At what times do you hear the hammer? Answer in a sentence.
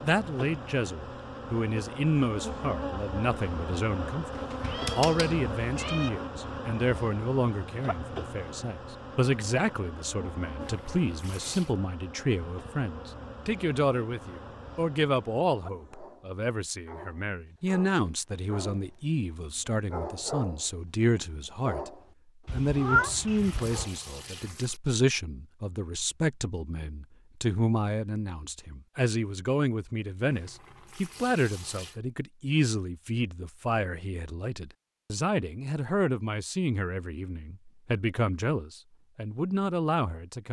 The hammer can't be heard in this clip.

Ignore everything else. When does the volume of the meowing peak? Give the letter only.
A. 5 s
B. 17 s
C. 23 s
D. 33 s
C.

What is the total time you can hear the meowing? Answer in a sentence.
You can hear the meowing for 3 seconds altogether.